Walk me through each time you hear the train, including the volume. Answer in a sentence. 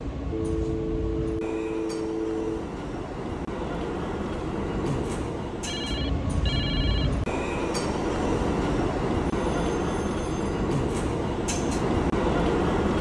You can hear the train from 0.0 to 12.9 s, getting louder.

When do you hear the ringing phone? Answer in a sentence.
The ringing phone can be heard from 0.3 to 2.6 s, from 5.7 to 7.1 s and from 9.5 to 10.7 s.